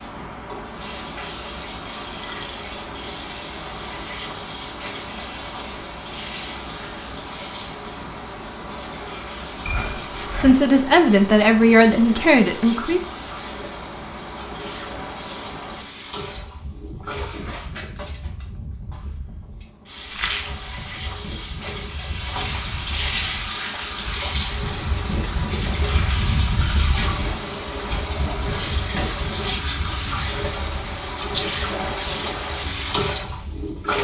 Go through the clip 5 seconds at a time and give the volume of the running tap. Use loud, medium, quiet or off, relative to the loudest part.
medium, medium, medium, medium, loud, loud, loud.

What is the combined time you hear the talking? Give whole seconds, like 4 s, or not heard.
3 s.